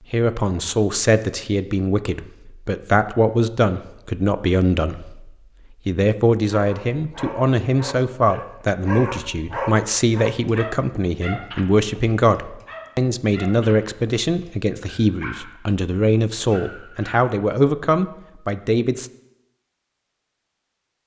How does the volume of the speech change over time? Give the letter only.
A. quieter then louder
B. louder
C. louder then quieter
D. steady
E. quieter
D.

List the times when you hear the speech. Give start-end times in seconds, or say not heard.
0.1-19.1.